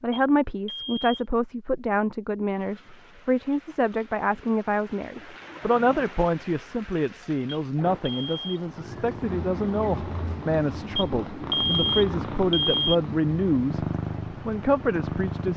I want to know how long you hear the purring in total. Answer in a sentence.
You can hear the purring for 7 seconds altogether.